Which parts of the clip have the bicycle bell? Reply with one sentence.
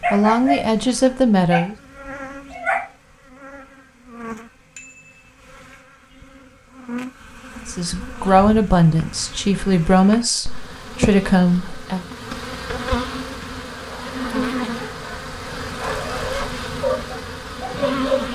You can hear the bicycle bell from 4.8 to 5.3 s.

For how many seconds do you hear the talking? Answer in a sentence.
The talking can be heard for 6 seconds in total.